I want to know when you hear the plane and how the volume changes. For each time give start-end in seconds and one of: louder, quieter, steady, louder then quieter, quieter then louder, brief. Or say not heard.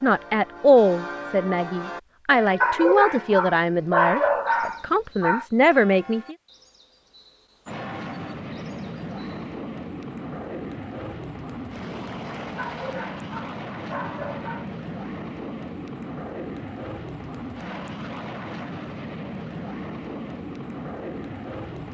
7.7-21.8 steady.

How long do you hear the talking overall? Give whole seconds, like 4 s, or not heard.
6 s.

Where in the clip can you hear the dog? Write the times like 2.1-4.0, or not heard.
2.6-5.5, 12.6-14.7.